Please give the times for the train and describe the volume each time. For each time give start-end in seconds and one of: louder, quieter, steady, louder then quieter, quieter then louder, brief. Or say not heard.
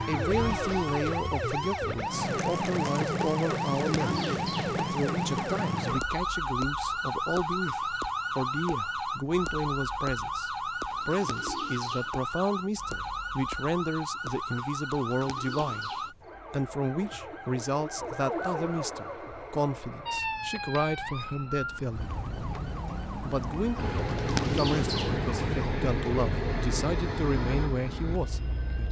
23.8-28.8 quieter.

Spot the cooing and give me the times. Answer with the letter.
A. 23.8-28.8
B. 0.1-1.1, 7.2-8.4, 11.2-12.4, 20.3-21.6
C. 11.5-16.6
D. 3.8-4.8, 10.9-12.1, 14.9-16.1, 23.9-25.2
D.